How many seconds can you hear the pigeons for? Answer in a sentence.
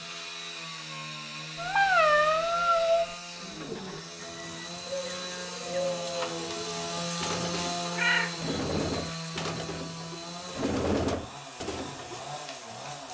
The pigeons can be heard for 9 seconds in total.